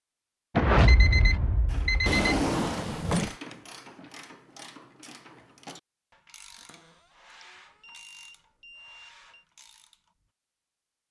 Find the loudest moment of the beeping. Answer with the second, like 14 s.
1 s.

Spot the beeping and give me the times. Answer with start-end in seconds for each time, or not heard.
0.6-2.4, 7.4-9.4.